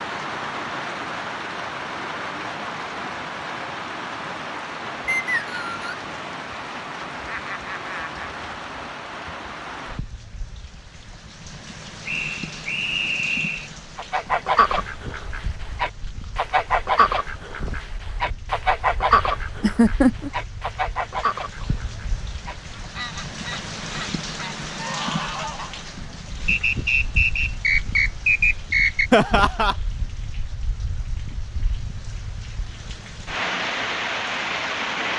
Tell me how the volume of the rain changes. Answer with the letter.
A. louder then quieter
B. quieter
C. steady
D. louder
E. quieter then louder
E.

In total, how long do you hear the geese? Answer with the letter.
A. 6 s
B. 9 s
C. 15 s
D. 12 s
D.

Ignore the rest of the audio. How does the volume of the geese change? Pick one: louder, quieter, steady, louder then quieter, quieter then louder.
quieter.